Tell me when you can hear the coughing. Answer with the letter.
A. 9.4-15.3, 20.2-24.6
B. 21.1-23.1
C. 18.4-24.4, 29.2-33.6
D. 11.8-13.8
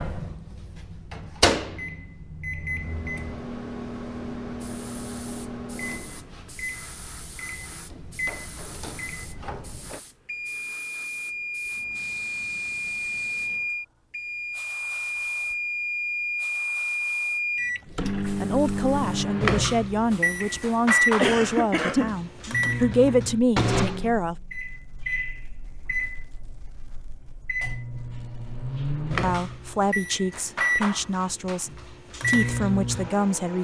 B.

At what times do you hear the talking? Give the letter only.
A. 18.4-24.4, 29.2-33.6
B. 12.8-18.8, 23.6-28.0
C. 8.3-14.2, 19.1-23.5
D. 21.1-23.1
A.